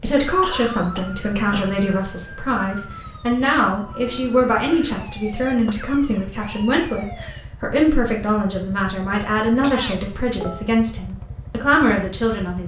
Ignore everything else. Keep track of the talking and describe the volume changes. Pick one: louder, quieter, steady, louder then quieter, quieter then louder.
steady.